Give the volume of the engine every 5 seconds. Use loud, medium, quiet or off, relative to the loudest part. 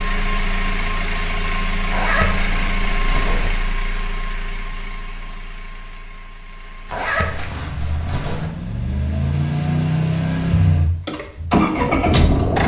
medium, medium, loud.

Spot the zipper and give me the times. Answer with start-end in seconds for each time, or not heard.
1.9-3.5, 6.8-8.5.